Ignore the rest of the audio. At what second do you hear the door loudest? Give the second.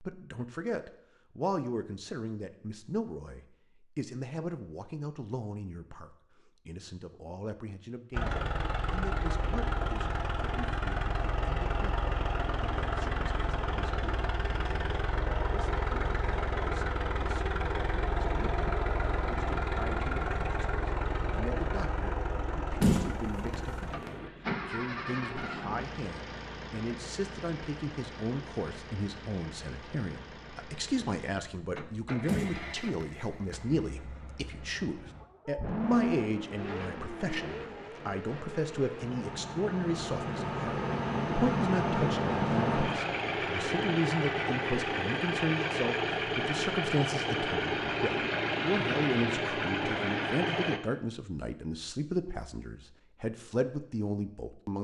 23 s.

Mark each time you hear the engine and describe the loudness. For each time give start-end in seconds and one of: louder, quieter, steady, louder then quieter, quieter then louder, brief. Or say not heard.
8.1-50.8 quieter then louder.